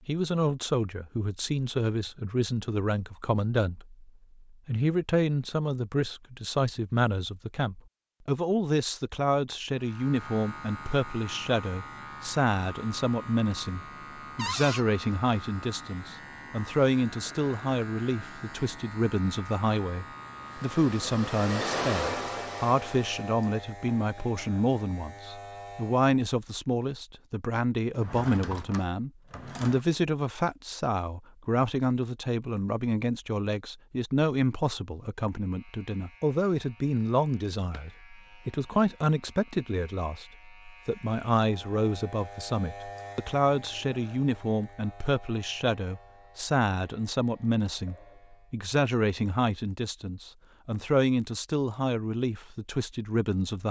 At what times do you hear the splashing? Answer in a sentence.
The splashing can't be heard in this clip.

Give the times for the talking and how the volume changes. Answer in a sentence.
You can hear the talking from 0.1 to 53.6 s, at a steady volume.